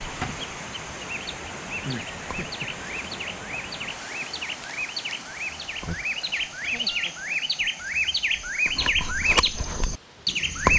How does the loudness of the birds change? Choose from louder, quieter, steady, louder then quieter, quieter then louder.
louder.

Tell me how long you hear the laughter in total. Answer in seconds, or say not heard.
2 s.